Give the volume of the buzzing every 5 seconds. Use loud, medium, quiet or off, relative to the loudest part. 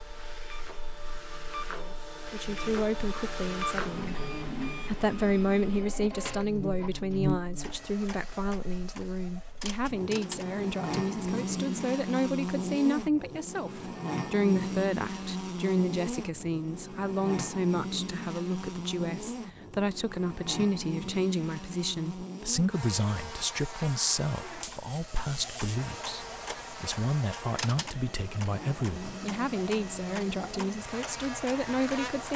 quiet, loud, loud, loud, medium, medium, medium.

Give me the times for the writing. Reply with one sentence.
You can't hear the writing here.